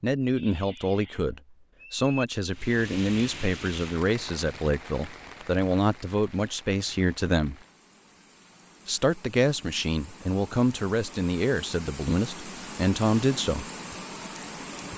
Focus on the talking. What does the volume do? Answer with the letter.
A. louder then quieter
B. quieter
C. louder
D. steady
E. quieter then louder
D.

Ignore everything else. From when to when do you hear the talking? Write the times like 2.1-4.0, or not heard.
0.0-7.5, 8.8-13.7.